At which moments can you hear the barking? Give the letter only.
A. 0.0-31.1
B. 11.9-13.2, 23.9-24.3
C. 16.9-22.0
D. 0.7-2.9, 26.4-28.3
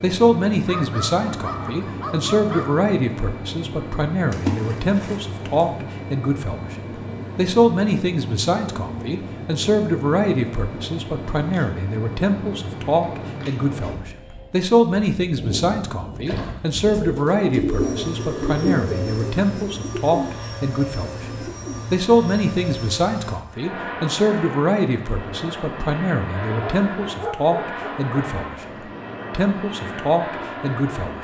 D.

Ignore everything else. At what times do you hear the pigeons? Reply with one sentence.
The pigeons can be heard from 16.9 to 22.0 s.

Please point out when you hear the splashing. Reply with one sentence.
The splashing can be heard from 4.3 to 5.5 s and from 16.2 to 16.7 s.